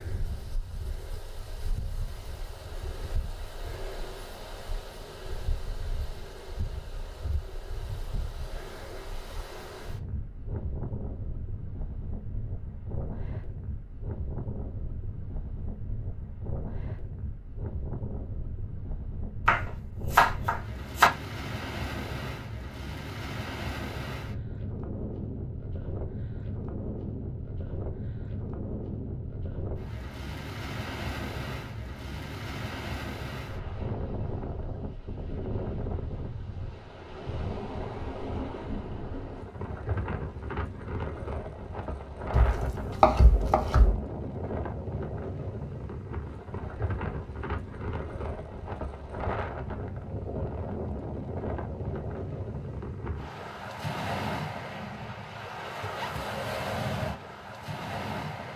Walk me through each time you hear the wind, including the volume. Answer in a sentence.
You can hear the wind from 0.0 to 58.5 s, getting louder.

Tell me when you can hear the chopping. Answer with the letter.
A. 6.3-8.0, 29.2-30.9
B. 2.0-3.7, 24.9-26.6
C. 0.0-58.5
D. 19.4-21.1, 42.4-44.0
D.